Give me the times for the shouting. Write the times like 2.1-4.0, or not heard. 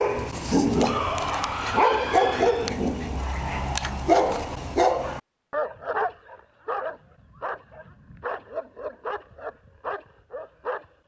0.7-2.7.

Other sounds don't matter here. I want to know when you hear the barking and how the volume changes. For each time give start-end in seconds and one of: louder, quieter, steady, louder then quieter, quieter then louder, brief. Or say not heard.
0.0-10.9 quieter.